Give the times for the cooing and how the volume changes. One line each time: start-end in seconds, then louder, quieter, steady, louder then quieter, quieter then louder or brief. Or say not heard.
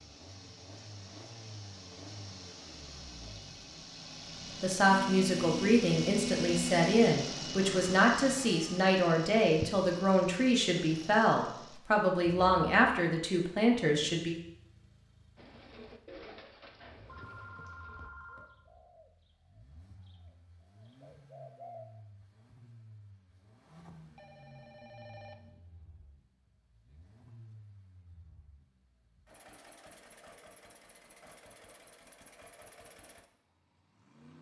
15.3-21.9 quieter then louder.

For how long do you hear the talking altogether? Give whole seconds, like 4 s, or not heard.
10 s.